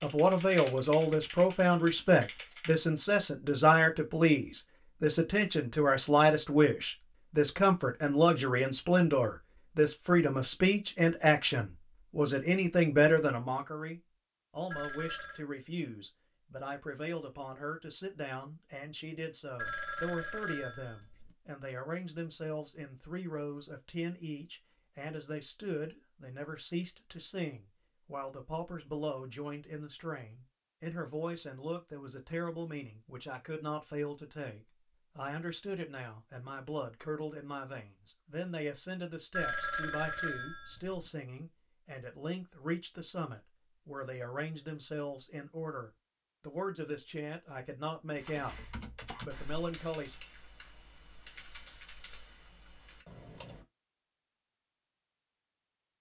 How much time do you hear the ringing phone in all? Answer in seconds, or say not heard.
4 s.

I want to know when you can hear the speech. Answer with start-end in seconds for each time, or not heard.
0.0-48.5, 49.2-50.1.